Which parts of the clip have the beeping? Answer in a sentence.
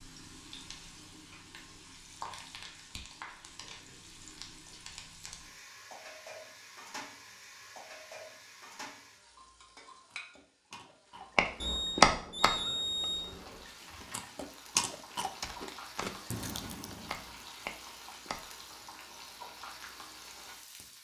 You can hear the beeping from 11.6 to 13.7 s.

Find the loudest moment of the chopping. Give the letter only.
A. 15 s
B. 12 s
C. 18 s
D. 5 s
B.